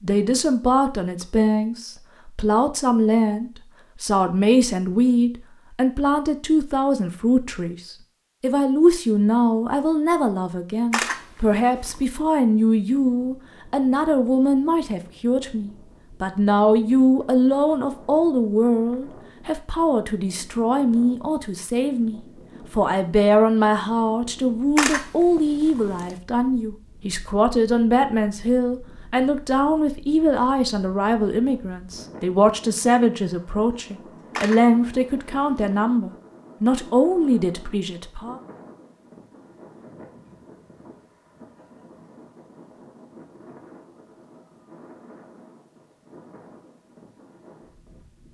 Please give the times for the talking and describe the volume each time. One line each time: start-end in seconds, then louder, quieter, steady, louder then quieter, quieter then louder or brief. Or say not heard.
0.0-38.4 steady.